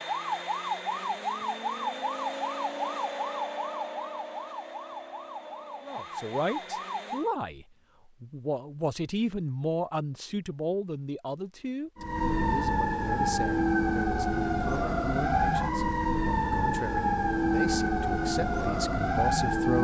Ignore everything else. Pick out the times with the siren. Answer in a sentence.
The siren can be heard from 0.0 to 7.3 s and from 11.9 to 19.7 s.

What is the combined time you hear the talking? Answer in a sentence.
You can hear the talking for 14 seconds altogether.